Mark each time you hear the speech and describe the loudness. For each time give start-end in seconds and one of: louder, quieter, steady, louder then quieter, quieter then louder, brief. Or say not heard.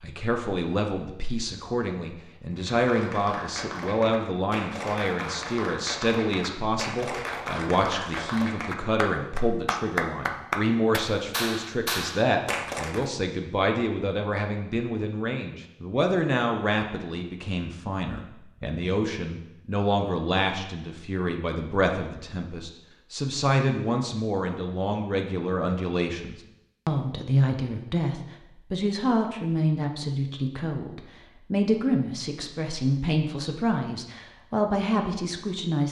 0.0-35.8 steady.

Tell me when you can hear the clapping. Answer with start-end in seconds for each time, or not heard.
2.5-13.1.